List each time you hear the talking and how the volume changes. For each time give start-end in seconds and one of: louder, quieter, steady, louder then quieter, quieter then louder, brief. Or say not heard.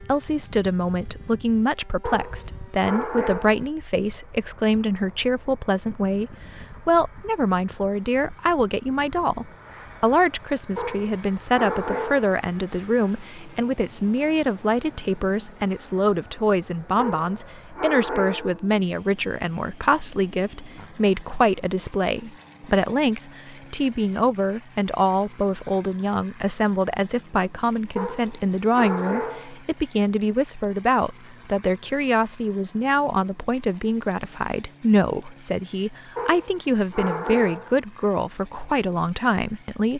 0.0-39.9 steady.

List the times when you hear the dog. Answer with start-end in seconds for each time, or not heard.
2.0-3.7, 10.8-12.3, 16.9-18.6, 27.9-29.6, 36.1-37.8.